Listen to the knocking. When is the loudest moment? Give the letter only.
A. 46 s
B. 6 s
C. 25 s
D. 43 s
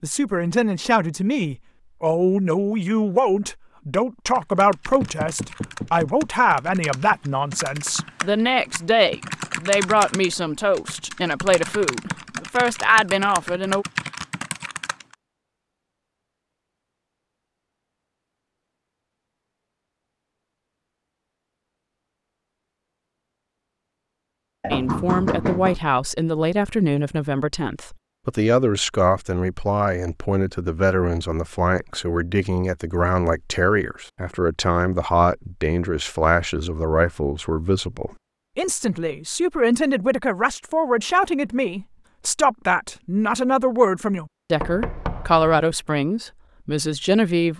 C.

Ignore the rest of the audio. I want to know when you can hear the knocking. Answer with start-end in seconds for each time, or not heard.
5.0-6.3, 24.6-25.8, 44.5-45.6.